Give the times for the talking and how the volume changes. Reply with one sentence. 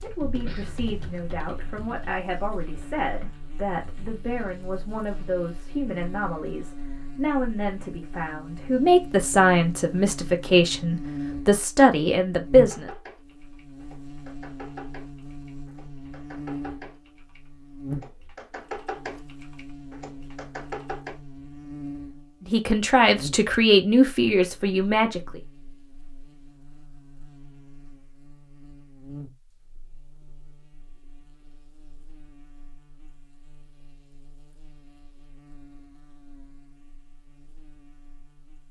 The talking can be heard from 0.0 to 12.9 s, getting louder; and briefly from 22.4 to 25.4 s.